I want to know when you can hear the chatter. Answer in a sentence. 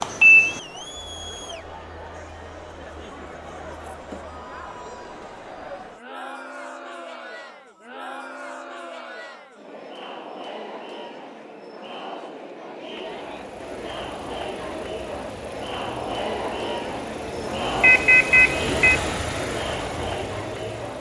You can hear the chatter from 0.0 to 20.9 s.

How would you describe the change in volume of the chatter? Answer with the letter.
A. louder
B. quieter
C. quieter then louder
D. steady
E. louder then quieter
A.